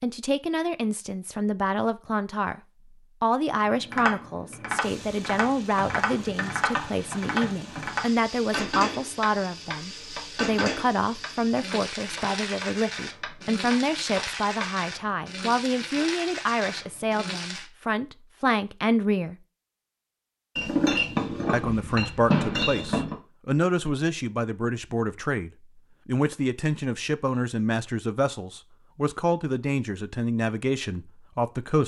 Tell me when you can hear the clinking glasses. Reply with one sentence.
The clinking glasses can be heard from 20.6 to 23.1 s.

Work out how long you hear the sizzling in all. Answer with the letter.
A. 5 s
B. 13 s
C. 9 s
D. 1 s
B.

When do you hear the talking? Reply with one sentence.
You can hear the talking from 0.0 to 2.6 s, from 3.2 to 19.4 s and from 21.5 to 31.8 s.